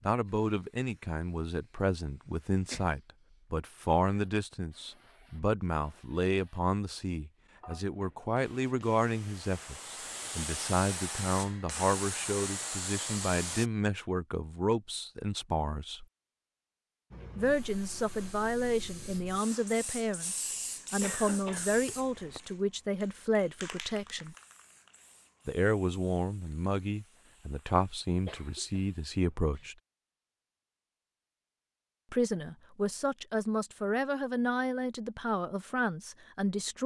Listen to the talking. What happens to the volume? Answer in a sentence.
The loudness of the talking stays about the same.